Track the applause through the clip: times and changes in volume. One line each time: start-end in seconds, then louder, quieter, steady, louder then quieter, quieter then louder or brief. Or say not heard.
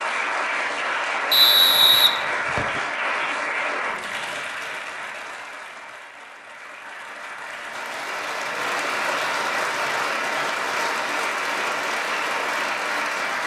0.0-13.4 quieter then louder.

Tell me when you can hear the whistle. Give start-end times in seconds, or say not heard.
1.3-2.8.